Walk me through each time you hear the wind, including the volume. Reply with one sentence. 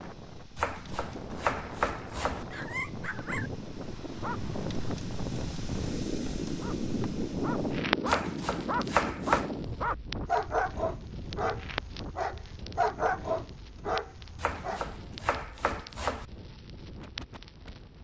You can hear the wind from 0.0 to 17.9 s, getting louder then quieter.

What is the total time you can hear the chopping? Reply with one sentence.
The chopping can be heard for 5 seconds in total.